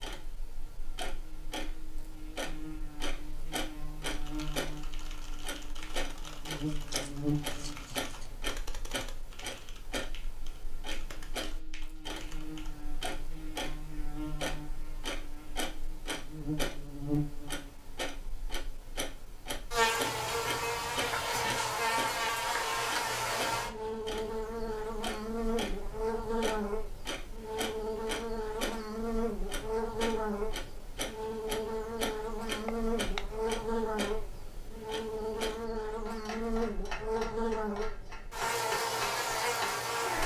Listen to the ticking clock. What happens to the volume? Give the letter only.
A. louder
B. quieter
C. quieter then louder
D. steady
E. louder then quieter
D.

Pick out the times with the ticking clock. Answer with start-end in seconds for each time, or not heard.
0.0-40.2.